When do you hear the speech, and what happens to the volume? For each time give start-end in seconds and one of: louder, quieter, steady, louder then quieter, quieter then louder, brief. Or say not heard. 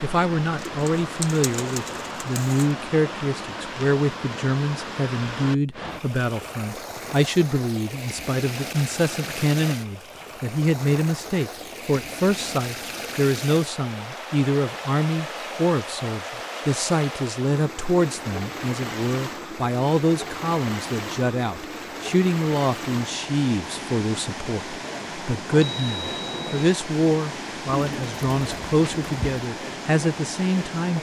0.0-30.9 steady.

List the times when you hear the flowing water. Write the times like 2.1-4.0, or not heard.
0.0-30.9.